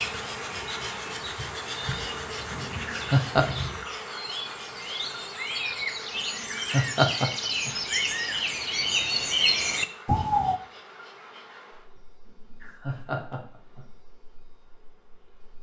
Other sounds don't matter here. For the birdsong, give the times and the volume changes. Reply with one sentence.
You can hear the birdsong from 0.0 to 10.6 s, getting louder.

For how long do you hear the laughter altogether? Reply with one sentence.
You can hear the laughter for 3 seconds altogether.